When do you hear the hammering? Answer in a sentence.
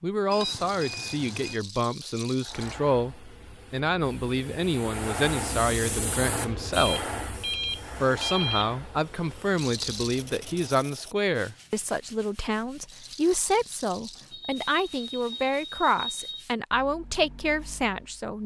You can't hear the hammering here.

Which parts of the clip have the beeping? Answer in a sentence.
You can hear the beeping from 0.3 to 1.6 s, from 6.8 to 8.8 s and from 14.3 to 16.4 s.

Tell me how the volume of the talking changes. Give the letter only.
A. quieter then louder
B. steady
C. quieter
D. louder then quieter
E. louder
B.